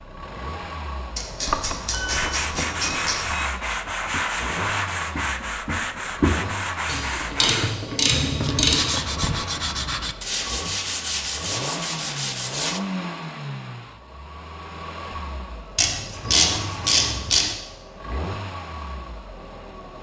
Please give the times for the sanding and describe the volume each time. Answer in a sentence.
You can hear the sanding from 2.0 to 12.8 s, at a steady volume.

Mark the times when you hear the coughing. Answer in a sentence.
You can't hear the coughing here.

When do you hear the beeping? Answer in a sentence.
The beeping can be heard from 1.4 to 3.5 s.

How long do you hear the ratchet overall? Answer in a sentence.
You can hear the ratchet for 6 seconds altogether.